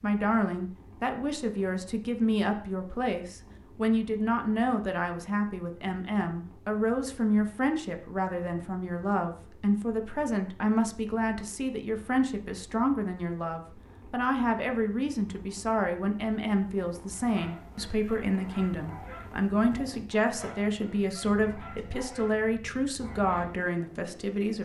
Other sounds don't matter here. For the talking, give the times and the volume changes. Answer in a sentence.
You can hear the talking from 0.0 to 24.6 s, at a steady volume.